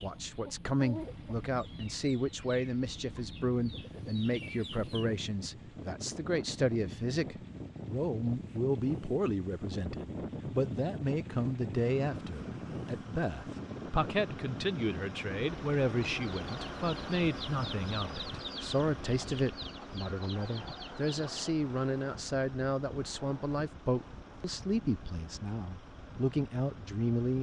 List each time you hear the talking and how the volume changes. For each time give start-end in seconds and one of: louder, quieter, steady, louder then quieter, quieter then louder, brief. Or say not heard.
0.0-27.3 steady.